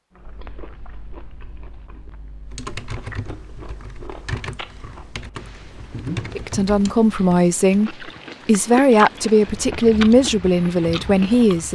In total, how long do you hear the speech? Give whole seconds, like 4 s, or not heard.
5 s.